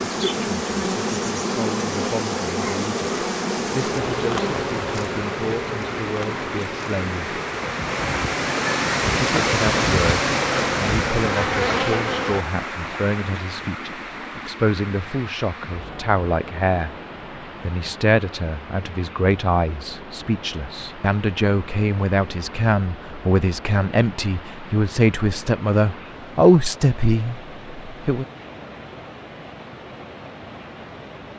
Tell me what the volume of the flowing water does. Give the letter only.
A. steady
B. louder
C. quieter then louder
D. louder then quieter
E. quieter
E.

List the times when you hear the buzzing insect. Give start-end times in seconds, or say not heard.
0.0-12.4.